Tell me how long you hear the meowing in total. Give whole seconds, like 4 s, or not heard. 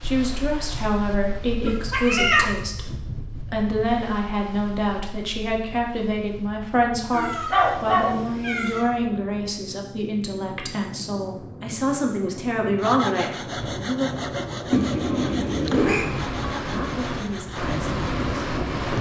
4 s.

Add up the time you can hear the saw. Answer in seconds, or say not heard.
5 s.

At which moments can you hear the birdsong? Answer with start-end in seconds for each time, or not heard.
not heard.